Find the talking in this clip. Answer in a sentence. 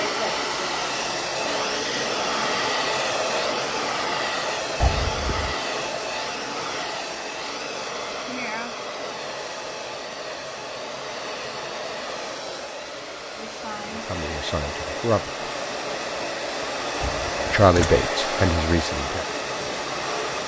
You can hear the talking from 14.1 to 15.5 s and from 17.4 to 19.2 s.